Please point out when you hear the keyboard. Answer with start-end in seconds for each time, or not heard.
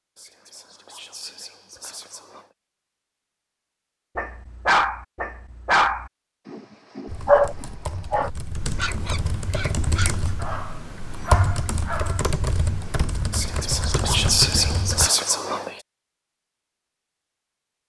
7.0-15.1.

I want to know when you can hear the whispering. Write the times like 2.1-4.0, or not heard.
0.1-2.5, 13.3-15.8.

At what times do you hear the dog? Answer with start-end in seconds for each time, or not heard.
4.2-12.3.